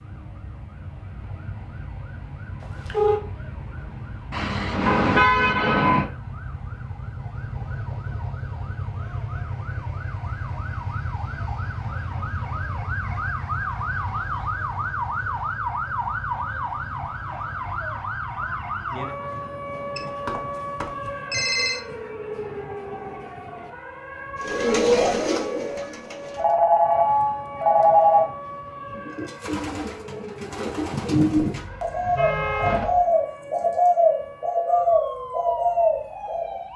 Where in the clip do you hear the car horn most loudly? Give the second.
5 s.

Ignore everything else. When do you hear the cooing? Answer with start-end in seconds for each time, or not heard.
24.4-26.6, 28.9-36.7.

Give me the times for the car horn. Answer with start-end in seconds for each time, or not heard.
4.3-6.0, 31.4-33.0.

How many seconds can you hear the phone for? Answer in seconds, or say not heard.
4 s.